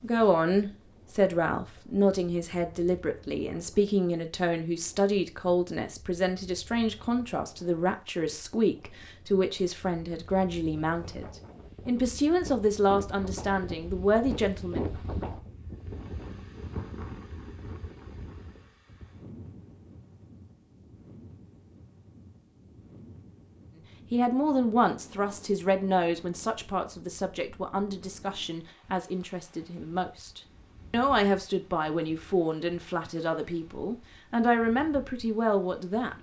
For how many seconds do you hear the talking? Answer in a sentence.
You can hear the talking for 27 seconds altogether.